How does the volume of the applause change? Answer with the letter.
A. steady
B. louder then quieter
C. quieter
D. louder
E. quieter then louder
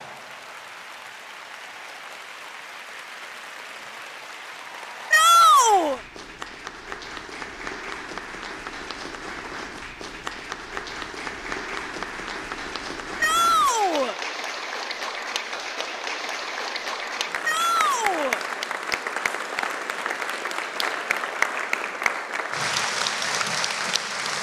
D.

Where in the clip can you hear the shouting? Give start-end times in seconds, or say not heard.
5.1-6.0, 13.2-14.2, 17.4-18.4.